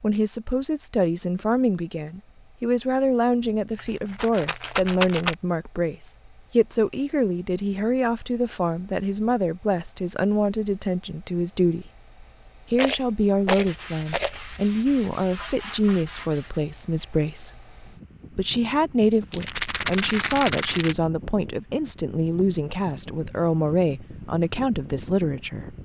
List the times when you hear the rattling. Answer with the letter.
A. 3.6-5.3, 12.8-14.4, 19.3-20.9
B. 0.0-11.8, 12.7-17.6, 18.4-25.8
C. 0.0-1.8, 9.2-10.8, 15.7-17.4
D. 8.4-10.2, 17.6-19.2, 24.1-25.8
A.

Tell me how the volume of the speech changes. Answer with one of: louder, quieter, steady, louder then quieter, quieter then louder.
steady.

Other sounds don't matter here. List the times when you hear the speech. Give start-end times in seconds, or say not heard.
0.0-11.8, 12.7-17.6, 18.4-25.8.